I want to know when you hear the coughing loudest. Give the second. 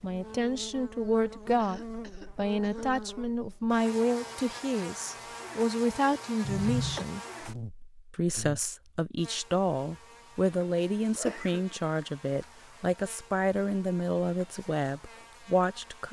7 s.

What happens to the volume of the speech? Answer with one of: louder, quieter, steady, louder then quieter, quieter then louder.
steady.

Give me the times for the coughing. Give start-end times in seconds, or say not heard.
1.6-2.9, 6.4-7.0, 11.2-11.7.